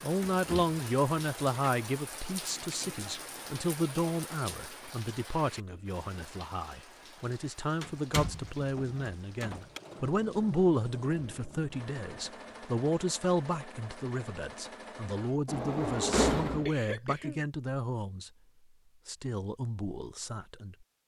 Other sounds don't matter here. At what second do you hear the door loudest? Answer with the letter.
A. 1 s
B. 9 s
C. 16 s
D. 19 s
C.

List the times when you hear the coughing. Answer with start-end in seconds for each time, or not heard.
16.4-17.4.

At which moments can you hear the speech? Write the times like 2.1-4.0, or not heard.
0.0-18.3, 19.1-20.8.